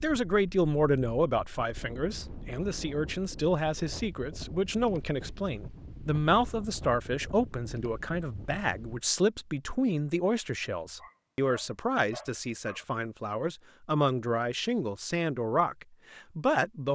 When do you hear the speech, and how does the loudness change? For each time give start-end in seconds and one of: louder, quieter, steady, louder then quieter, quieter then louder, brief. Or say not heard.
0.0-16.9 steady.